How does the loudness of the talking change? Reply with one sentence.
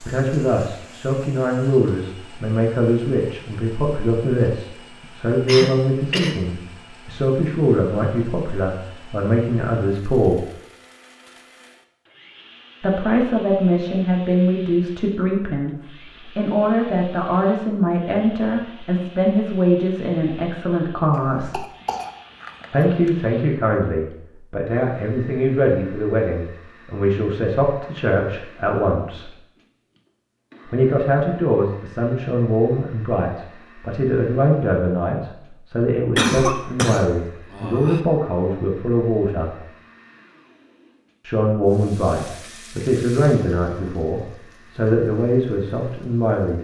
The volume of the talking stays about the same.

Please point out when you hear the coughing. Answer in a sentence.
The coughing can be heard from 5.0 to 6.3 s, from 21.1 to 23.1 s and from 36.1 to 38.0 s.